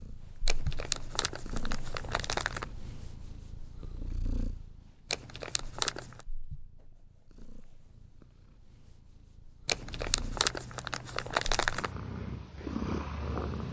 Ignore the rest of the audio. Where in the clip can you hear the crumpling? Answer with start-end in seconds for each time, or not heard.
0.5-2.6, 5.1-6.2, 9.7-11.9.